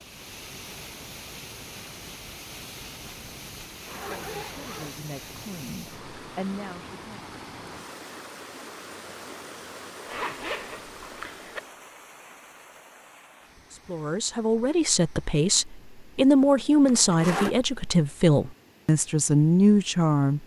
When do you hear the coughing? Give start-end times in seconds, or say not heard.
not heard.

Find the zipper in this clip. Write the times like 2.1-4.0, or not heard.
3.8-5.0, 10.1-11.6, 16.9-17.6.